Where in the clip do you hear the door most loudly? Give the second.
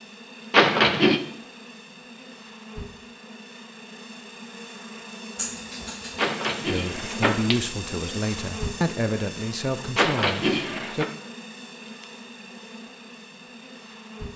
1 s.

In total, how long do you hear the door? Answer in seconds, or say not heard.
3 s.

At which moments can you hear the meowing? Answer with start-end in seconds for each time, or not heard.
5.3-6.3.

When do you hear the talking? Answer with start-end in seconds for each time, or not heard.
6.7-11.1.